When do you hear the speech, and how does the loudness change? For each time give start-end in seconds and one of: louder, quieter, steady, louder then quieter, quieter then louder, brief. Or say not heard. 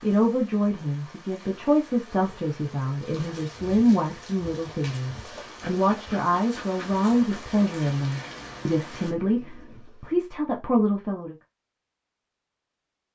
0.0-11.3 steady.